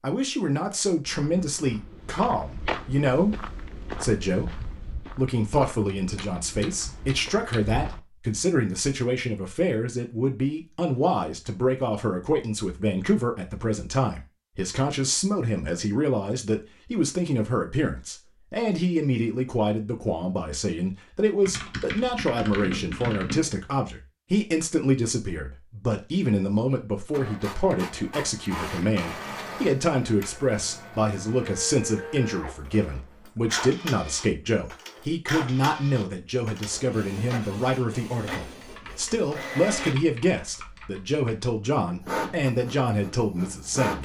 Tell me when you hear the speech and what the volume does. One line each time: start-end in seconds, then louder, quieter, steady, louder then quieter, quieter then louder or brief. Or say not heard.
0.0-44.0 steady.